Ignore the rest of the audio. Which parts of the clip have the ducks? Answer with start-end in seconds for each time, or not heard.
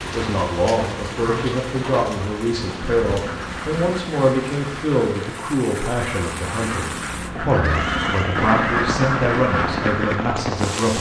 2.7-10.3.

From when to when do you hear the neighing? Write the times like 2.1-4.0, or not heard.
7.5-8.8.